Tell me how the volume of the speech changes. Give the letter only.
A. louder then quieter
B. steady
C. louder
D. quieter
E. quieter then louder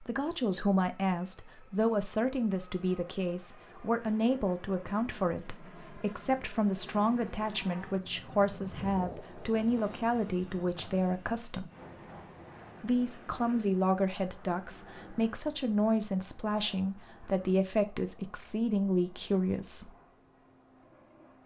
B.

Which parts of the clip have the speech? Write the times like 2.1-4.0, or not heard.
0.0-11.7, 12.8-19.9.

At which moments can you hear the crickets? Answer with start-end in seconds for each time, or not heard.
not heard.